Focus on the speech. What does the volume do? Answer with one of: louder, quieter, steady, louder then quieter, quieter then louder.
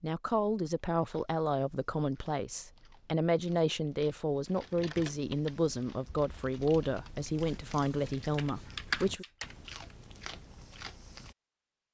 steady.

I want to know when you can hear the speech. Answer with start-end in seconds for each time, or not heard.
0.0-9.2.